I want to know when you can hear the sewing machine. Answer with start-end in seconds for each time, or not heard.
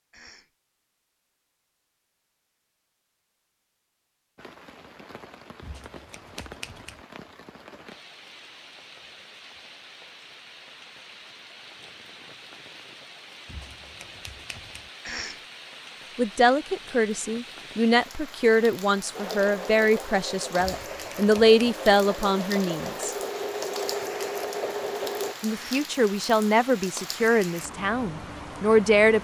19.1-25.4.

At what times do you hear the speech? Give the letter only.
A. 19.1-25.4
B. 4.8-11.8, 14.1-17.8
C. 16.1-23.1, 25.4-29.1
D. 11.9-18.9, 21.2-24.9
C.